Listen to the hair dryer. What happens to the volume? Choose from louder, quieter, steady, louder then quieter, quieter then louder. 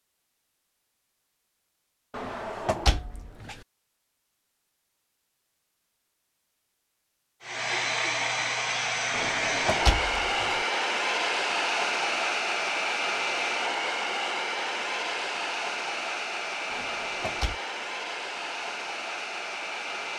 quieter.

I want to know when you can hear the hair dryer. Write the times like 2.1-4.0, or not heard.
7.4-20.1.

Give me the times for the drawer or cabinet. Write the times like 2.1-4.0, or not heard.
2.1-3.6, 9.1-10.6, 16.7-17.6.